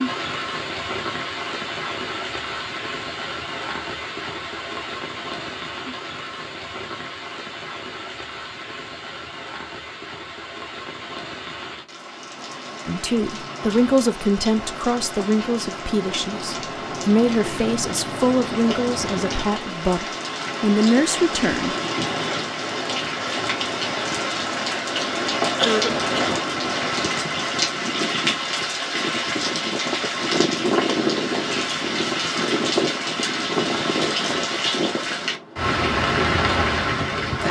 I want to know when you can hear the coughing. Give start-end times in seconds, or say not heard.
25.6-26.4.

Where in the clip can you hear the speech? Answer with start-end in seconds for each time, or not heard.
12.8-21.8.